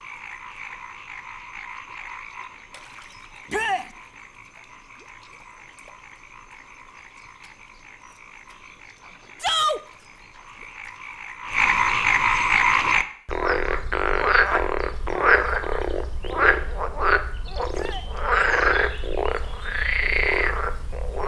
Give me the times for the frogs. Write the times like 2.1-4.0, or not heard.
0.0-21.2.